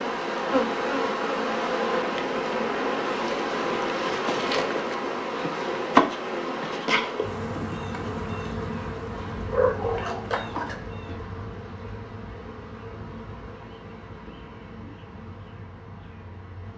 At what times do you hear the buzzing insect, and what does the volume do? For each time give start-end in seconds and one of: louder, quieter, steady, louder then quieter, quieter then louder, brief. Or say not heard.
0.0-16.7 quieter.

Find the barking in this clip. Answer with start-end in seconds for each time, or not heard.
8.8-10.8.